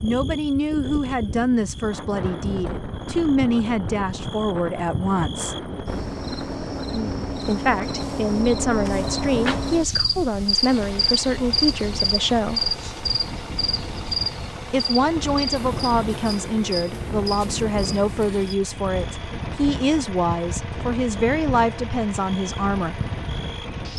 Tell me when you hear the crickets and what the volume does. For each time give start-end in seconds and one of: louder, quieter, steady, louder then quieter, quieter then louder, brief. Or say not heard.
0.0-23.7 louder then quieter.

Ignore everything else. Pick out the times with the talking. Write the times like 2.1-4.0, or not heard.
0.0-5.5, 7.5-12.7, 14.7-23.0.